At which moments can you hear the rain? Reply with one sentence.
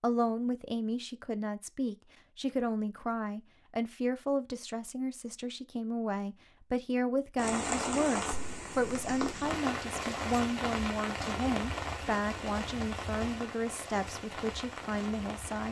The rain can be heard from 7.3 to 15.6 s.